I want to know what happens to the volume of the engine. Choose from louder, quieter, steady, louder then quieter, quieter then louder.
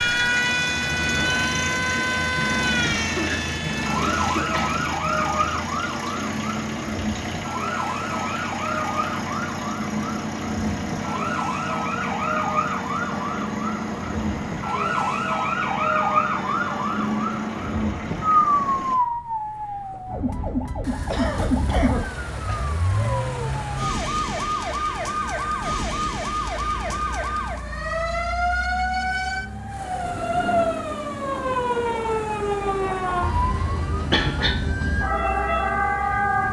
quieter.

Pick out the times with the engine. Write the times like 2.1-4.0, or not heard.
0.0-36.4.